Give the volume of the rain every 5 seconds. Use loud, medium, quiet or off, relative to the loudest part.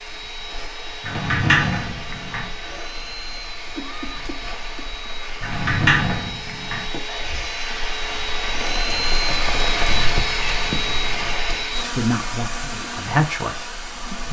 medium, loud, loud.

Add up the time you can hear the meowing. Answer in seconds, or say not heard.
3 s.